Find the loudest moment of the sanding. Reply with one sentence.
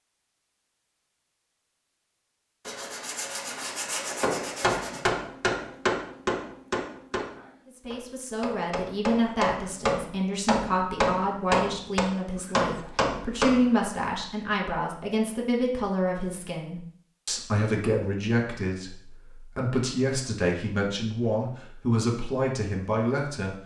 The volume of the sanding peaks at 4 seconds.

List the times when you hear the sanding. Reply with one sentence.
You can hear the sanding from 2.6 to 5.1 s.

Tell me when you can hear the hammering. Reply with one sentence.
The hammering can be heard from 4.2 to 13.7 s.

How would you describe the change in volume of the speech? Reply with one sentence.
The loudness of the speech stays about the same.